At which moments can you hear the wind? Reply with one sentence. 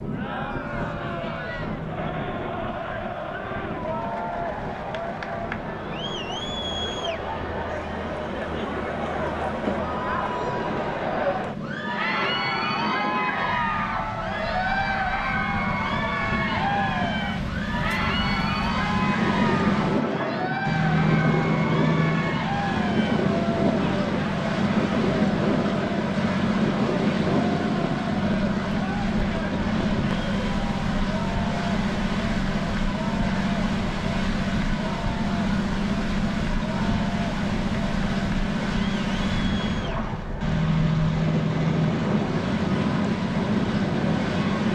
You can hear the wind from 0.0 to 44.7 s.